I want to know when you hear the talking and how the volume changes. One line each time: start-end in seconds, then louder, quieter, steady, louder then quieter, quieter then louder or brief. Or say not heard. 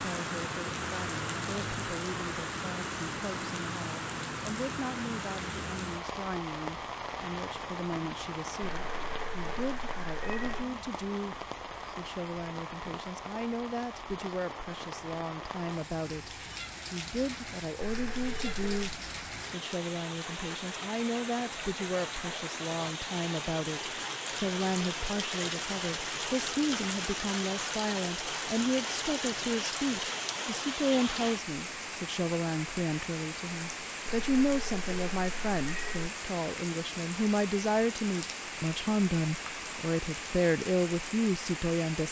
0.0-42.0 louder.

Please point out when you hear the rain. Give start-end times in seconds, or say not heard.
0.0-42.0.